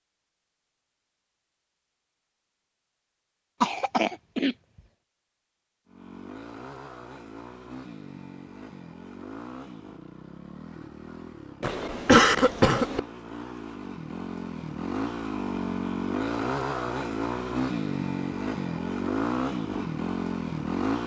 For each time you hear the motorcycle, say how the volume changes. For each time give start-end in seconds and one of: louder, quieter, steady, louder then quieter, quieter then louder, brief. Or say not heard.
5.8-21.0 louder.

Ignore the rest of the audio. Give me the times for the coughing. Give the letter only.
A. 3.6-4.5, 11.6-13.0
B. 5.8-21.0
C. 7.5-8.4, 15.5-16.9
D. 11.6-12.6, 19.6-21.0
A.